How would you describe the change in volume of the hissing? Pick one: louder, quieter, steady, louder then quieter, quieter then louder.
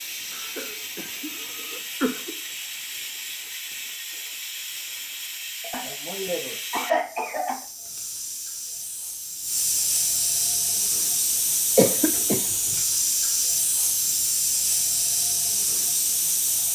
louder.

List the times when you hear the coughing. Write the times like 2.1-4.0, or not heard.
0.3-2.4, 5.6-7.7, 11.8-12.4.